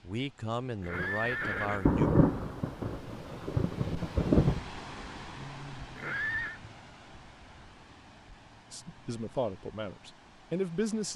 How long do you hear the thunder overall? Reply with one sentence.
You can hear the thunder for 4 seconds altogether.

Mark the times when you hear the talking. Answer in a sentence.
The talking can be heard from 0.0 to 2.1 s and from 8.7 to 11.1 s.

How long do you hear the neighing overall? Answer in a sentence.
You can hear the neighing for 2 seconds altogether.